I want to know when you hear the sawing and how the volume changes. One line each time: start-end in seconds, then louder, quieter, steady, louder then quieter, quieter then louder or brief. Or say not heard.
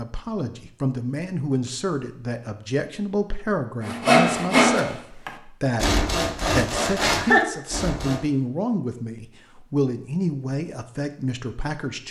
3.8-8.2 quieter then louder.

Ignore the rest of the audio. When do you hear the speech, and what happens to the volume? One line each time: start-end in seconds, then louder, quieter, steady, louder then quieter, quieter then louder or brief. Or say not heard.
0.0-12.0 steady.